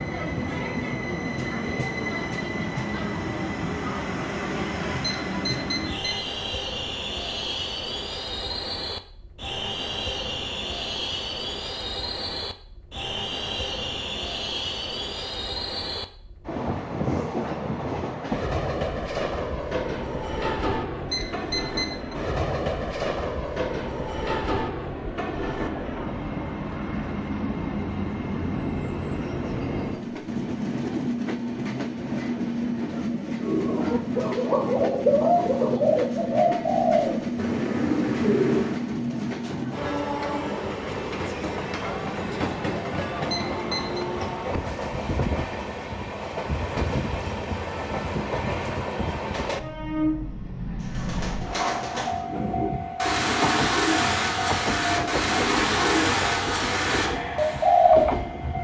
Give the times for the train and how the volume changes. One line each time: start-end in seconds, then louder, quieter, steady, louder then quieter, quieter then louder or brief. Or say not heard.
0.0-58.5 steady.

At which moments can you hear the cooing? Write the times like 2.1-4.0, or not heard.
33.4-38.9, 50.9-58.1.